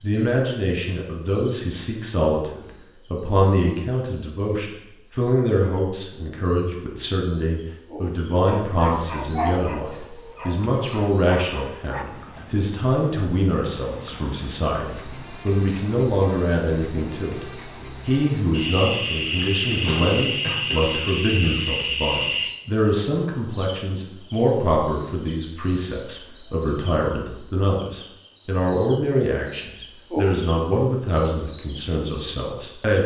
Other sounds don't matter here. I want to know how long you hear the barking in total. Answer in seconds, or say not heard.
4 s.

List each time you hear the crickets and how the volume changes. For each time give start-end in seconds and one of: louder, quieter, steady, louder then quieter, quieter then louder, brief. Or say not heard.
0.0-33.0 louder.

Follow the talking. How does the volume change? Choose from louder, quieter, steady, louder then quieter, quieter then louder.
steady.